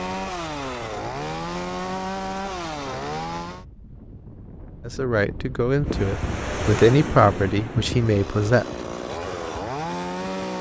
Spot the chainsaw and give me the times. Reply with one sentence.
You can hear the chainsaw from 0.0 to 3.6 s and from 7.8 to 10.5 s.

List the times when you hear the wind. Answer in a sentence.
You can hear the wind from 0.2 to 10.5 s.